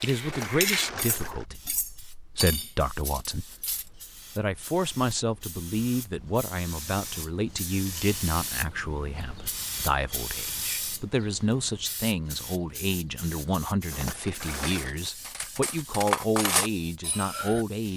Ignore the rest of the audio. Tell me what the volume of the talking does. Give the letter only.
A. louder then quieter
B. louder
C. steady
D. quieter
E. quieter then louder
C.